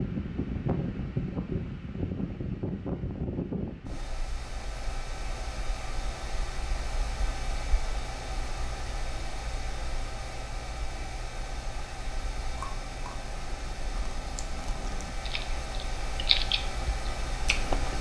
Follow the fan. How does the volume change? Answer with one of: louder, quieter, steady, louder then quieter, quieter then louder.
quieter.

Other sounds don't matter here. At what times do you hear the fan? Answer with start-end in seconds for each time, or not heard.
0.0-17.9.